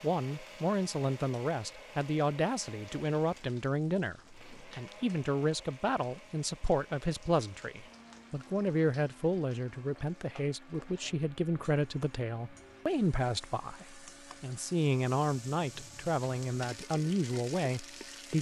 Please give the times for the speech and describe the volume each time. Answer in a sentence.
You can hear the speech from 0.0 to 18.3 s, at a steady volume.